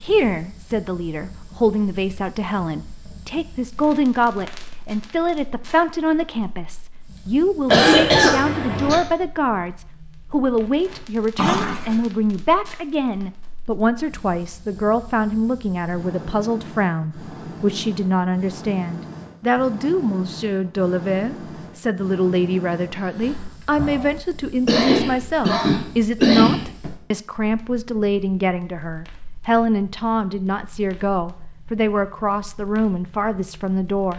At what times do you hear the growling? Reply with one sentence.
You can hear the growling from 11.3 to 12.0 s and from 22.9 to 24.2 s.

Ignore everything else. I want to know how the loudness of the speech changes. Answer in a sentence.
The loudness of the speech stays about the same.